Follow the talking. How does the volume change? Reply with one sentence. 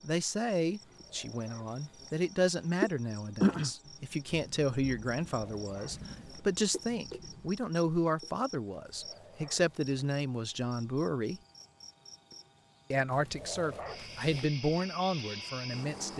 The volume of the talking stays about the same.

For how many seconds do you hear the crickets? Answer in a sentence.
You can hear the crickets for 16 seconds altogether.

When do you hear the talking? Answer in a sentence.
You can hear the talking from 0.0 to 11.4 s and from 12.9 to 16.1 s.